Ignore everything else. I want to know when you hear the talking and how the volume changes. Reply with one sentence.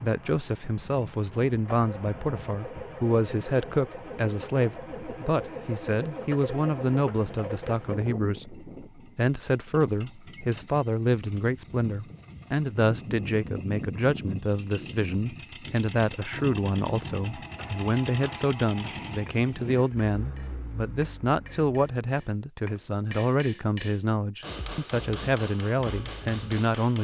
You can hear the talking from 0.0 to 26.9 s, at a steady volume.